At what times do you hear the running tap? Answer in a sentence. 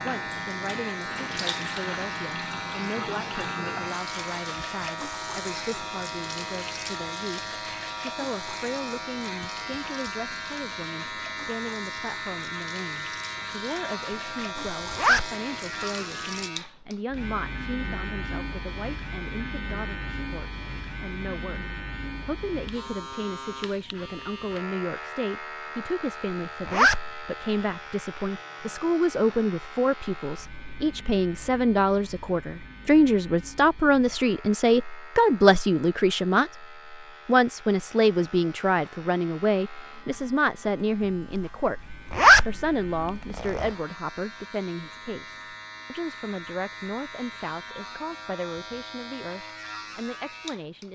You can hear the running tap from 0.0 to 16.5 s.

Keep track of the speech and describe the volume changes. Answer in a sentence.
The loudness of the speech goes up, then down.